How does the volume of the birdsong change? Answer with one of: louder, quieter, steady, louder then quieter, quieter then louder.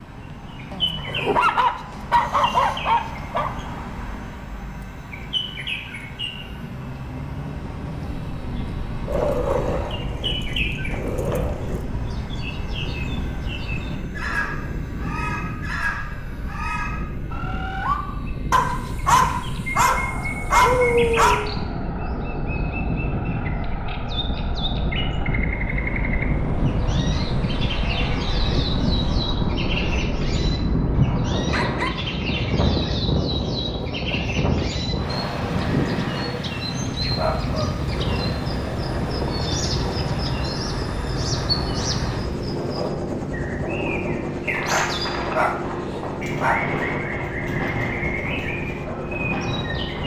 steady.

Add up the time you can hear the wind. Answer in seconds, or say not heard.
42 s.